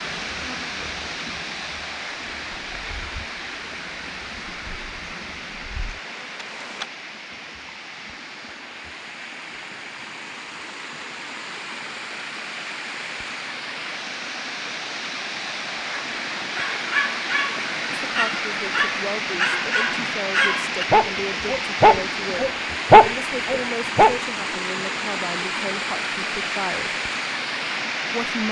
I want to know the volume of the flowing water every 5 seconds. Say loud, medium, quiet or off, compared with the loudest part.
medium, medium, medium, loud, loud, loud.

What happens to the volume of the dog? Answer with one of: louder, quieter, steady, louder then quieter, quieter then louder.
louder.